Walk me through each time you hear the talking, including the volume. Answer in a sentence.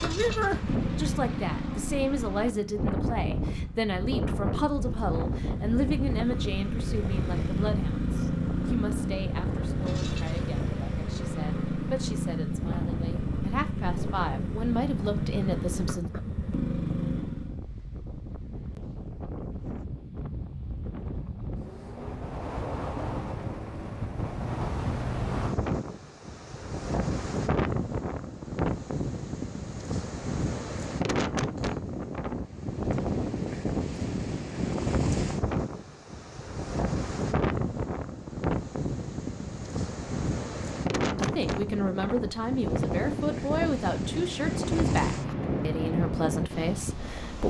The talking can be heard from 0.0 to 16.1 s, getting quieter then louder; and from 41.1 to 47.4 s, at a steady volume.